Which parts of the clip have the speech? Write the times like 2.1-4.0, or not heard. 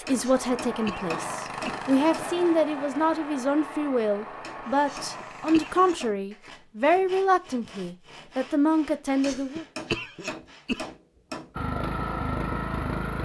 0.0-9.7.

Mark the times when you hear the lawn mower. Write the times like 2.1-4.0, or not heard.
0.0-6.0, 11.6-13.2.